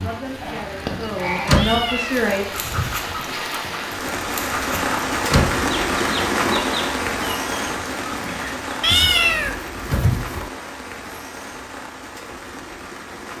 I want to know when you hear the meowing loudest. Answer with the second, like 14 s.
9 s.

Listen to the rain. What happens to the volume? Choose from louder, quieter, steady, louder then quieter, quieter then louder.
louder then quieter.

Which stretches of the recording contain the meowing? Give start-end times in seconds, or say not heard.
1.6-3.1, 8.8-10.5.